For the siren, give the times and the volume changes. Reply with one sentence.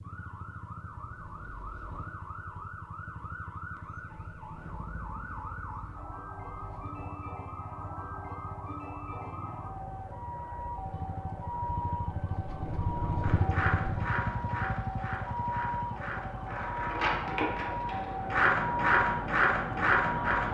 You can hear the siren from 0.0 to 20.4 s, getting louder.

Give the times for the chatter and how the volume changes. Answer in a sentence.
You can't hear the chatter here.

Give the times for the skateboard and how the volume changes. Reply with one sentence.
You can hear the skateboard from 13.2 to 20.4 s, getting quieter then louder.